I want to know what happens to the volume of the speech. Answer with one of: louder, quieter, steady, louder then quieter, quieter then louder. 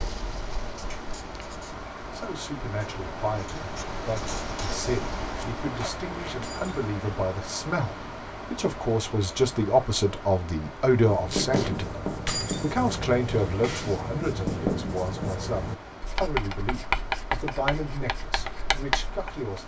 louder then quieter.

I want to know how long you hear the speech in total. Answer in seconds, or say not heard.
17 s.